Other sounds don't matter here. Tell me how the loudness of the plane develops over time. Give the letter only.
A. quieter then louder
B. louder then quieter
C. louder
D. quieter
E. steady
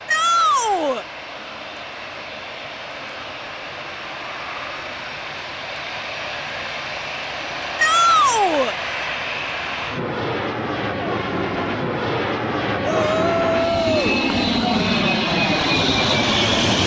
C.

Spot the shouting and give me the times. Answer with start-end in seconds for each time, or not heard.
0.1-1.1, 7.8-8.8, 12.8-14.8.